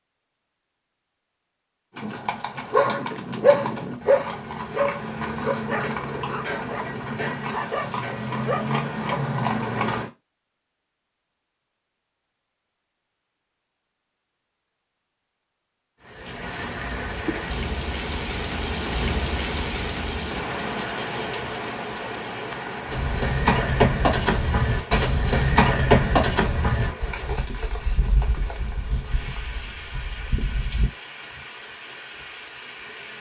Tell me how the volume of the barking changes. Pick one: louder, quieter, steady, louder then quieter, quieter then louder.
quieter.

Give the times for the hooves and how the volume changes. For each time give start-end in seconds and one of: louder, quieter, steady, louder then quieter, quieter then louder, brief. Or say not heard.
1.9-10.1 louder
22.9-30.9 quieter.